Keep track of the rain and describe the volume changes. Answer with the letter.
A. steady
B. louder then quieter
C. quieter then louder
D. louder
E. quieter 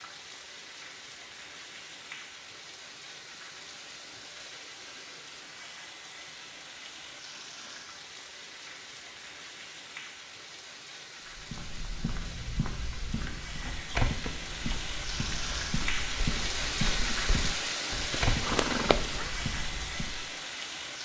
D.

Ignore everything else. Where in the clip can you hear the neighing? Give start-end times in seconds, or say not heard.
18.1-19.3.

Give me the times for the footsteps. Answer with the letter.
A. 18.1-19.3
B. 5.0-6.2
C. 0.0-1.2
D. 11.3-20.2
D.